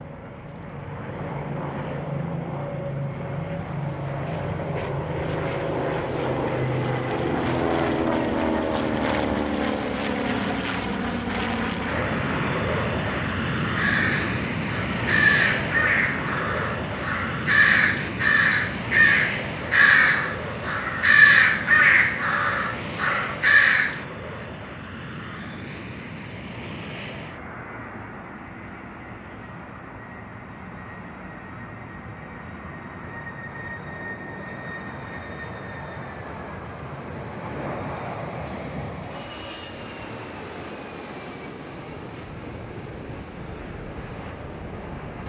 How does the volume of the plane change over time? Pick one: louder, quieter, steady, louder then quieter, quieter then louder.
quieter.